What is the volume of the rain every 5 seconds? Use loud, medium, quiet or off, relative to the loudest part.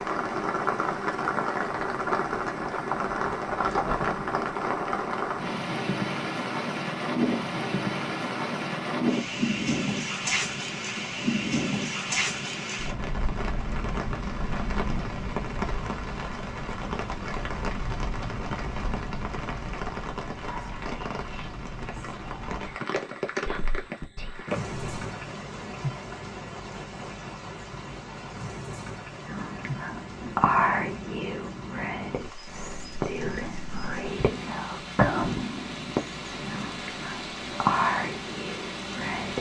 loud, loud, loud, medium, medium, medium, quiet, medium.